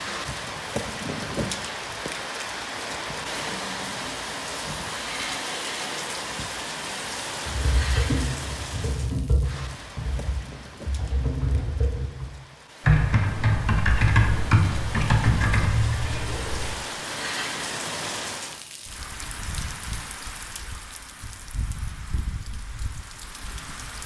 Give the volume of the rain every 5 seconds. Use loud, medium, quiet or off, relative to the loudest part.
loud, loud, quiet, loud, medium.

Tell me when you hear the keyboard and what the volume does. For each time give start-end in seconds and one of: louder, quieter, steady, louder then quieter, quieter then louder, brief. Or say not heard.
7.5-16.8 quieter then louder.